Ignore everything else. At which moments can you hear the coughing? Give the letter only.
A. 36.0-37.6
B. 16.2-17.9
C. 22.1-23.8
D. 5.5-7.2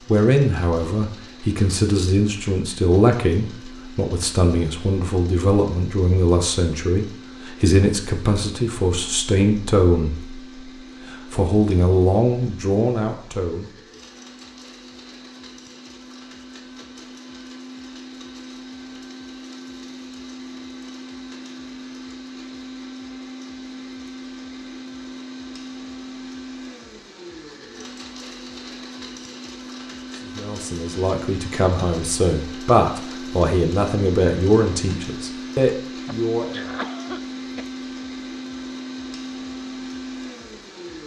A.